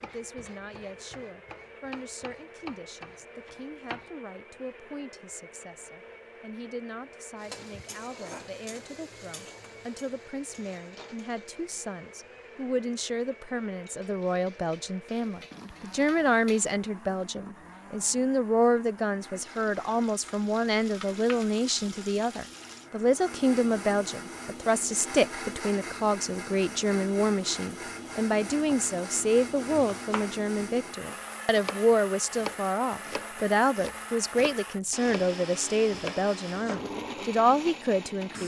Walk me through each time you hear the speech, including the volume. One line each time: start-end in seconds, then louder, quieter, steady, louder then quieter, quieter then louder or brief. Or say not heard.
0.0-38.4 louder.